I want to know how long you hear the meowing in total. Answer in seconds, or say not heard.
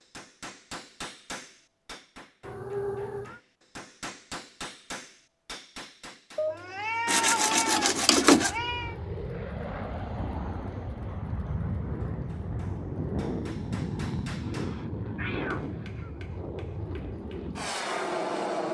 5 s.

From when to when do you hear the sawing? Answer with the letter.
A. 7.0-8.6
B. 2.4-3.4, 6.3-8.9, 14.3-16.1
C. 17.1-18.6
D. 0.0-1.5
A.